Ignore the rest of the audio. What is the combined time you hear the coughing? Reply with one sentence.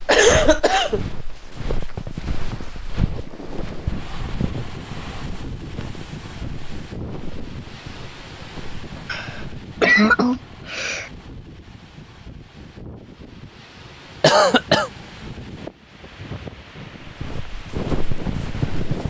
The coughing can be heard for 4 seconds in total.